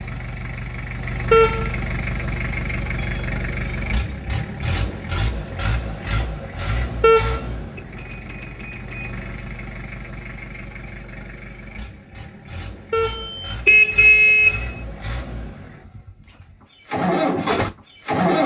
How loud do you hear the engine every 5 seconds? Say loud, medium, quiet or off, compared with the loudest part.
medium, medium, quiet, loud.